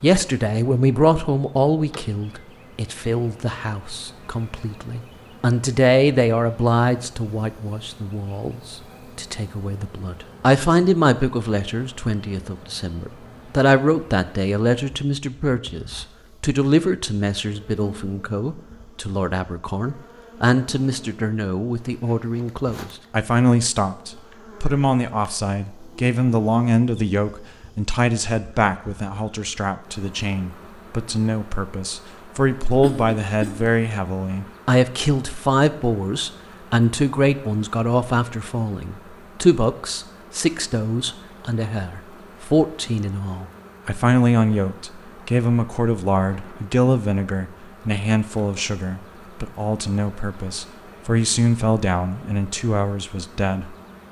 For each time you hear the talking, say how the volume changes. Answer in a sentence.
You can hear the talking from 0.0 to 54.0 s, at a steady volume.